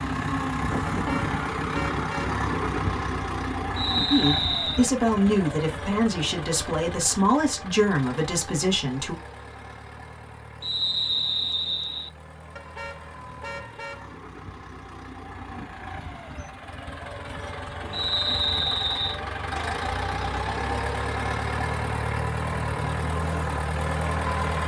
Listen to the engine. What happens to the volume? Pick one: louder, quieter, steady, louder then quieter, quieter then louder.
quieter then louder.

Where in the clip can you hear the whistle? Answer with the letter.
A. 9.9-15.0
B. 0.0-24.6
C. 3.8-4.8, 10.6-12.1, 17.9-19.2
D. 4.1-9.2
C.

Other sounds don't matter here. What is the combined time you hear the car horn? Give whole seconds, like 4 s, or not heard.
3 s.